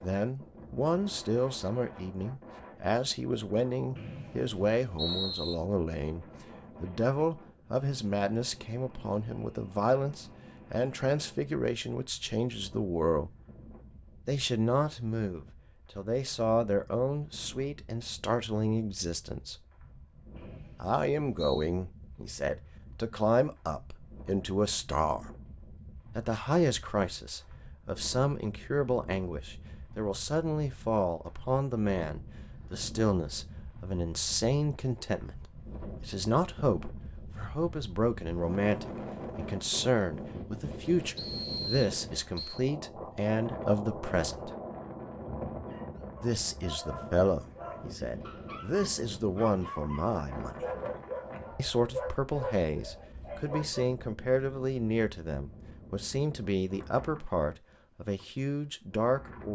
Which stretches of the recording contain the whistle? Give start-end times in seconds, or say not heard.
4.0-5.5, 20.4-21.6, 41.1-42.6.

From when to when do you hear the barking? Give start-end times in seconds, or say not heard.
45.6-54.0.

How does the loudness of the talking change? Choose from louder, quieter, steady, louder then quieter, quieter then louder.
steady.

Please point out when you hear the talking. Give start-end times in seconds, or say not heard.
0.0-13.3, 14.2-19.6, 20.8-25.3, 26.1-44.5, 46.2-50.6, 51.5-59.5.